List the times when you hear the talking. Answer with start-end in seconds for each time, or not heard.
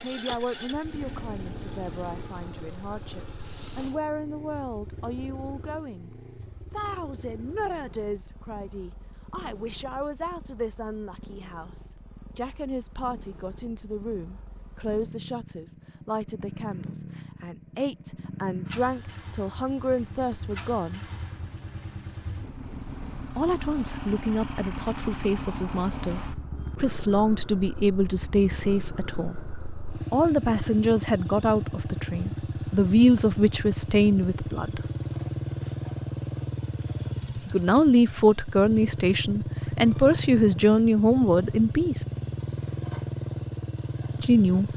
0.0-6.1, 6.7-21.0, 23.4-29.4, 30.1-34.8, 37.5-42.0, 44.2-44.7.